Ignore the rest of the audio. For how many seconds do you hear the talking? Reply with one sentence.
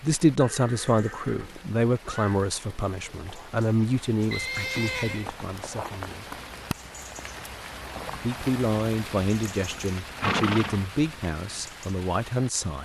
You can hear the talking for 11 seconds altogether.